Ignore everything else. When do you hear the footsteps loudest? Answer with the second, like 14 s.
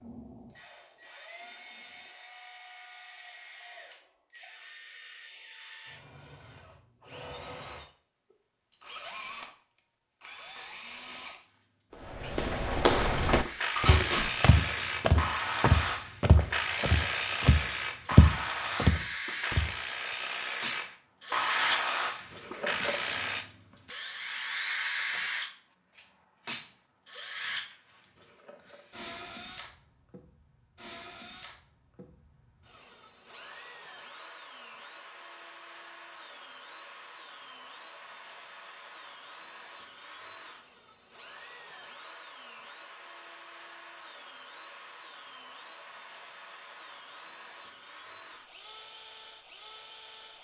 18 s.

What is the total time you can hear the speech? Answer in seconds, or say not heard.
not heard.